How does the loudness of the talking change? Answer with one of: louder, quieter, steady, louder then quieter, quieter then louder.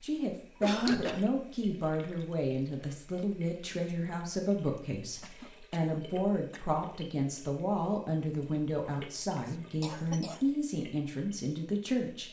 steady.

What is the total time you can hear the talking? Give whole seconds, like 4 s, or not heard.
12 s.